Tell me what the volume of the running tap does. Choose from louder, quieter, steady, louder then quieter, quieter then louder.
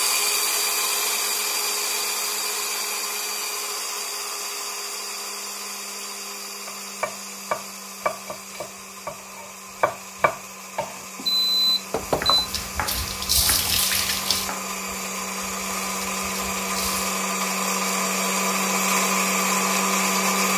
quieter then louder.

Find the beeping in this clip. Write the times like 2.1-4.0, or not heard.
11.2-12.5.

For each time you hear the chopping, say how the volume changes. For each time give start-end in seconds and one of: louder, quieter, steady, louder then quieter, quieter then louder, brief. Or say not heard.
6.7-14.8 quieter.